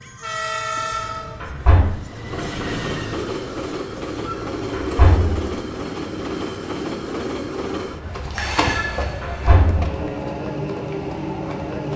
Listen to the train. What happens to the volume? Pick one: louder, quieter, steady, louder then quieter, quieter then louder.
steady.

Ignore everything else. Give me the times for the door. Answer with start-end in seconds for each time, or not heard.
0.9-1.9, 4.2-5.5, 8.8-9.9.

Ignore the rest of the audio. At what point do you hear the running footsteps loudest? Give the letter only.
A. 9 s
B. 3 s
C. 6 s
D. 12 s
A.